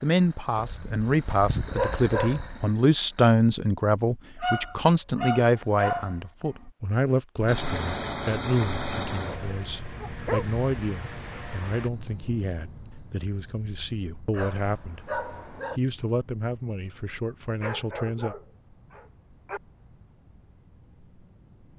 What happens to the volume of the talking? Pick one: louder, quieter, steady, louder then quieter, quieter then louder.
quieter.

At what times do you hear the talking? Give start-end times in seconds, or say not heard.
0.0-18.4.